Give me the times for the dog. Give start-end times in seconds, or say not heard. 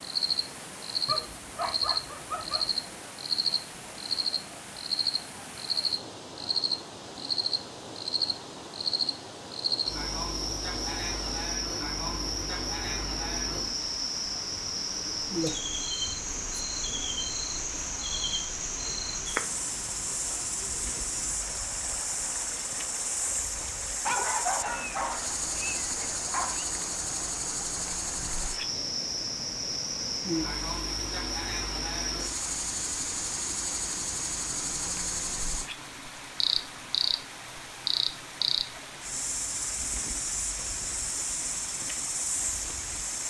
1.1-2.7, 24.1-26.6.